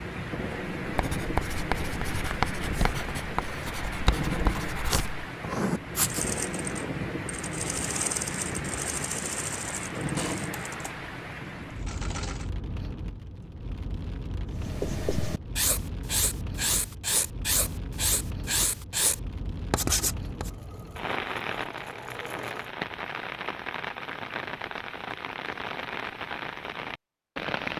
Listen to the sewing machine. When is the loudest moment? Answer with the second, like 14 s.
8 s.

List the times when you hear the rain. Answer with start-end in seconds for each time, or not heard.
0.0-27.7.